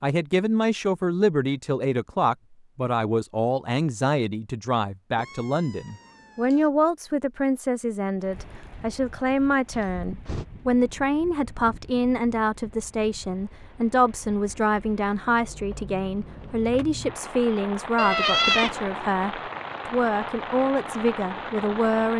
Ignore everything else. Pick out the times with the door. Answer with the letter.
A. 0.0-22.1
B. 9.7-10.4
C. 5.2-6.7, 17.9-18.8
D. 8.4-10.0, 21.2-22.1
B.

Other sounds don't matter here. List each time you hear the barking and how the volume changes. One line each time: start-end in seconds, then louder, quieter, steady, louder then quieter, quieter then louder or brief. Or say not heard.
not heard.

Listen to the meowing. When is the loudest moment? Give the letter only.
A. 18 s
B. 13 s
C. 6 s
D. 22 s
A.